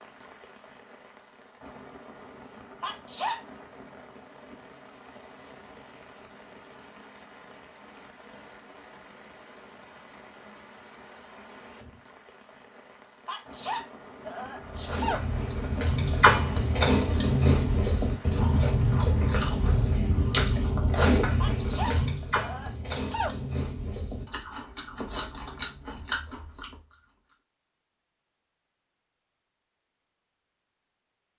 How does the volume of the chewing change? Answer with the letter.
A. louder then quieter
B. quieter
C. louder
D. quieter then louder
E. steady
B.